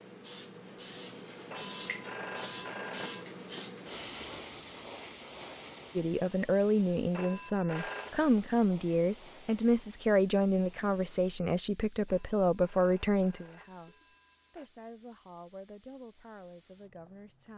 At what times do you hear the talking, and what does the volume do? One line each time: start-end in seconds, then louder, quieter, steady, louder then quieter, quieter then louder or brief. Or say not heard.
6.0-17.5 quieter.